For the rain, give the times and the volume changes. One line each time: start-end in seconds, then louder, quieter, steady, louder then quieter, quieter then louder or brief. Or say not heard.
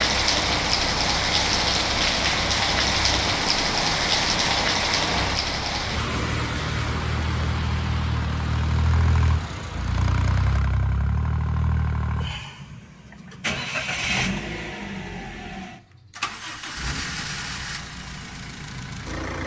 0.0-10.6 quieter.